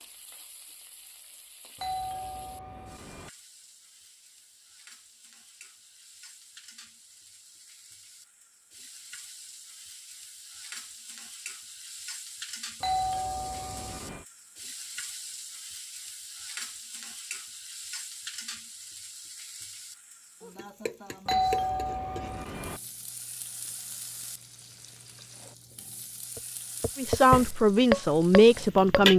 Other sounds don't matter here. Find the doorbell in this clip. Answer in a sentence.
You can hear the doorbell from 1.8 to 3.3 s, from 12.8 to 14.2 s and from 21.2 to 22.8 s.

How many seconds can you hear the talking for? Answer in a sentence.
The talking can be heard for 2 seconds in total.